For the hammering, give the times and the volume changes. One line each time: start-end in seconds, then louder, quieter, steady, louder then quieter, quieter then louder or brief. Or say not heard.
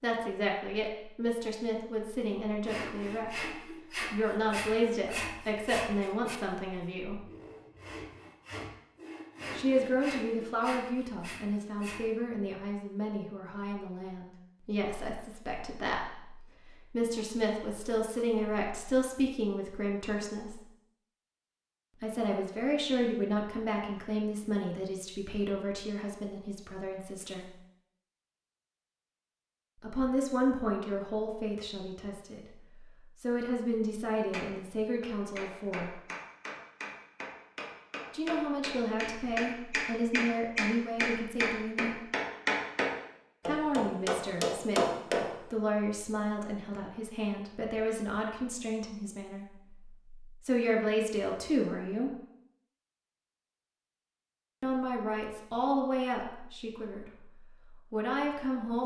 34.0-45.3 louder.